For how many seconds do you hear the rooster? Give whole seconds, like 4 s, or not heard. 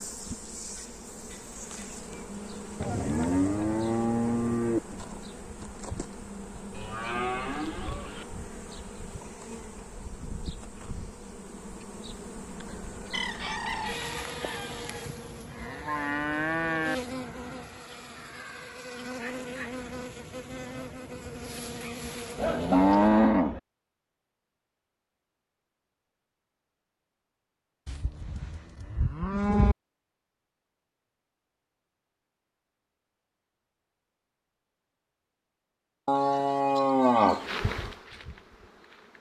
2 s.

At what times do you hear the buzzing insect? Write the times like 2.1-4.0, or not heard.
0.0-23.2, 37.4-39.1.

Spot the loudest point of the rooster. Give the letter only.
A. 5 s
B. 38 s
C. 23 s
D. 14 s
D.